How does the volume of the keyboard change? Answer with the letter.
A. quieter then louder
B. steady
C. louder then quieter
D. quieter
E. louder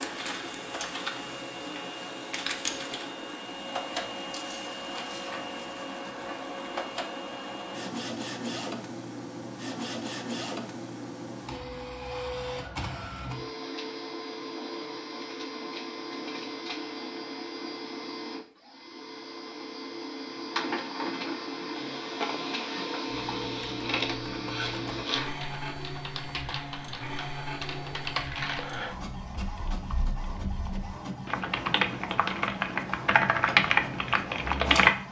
E.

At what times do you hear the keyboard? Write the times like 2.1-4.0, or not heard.
23.1-35.0.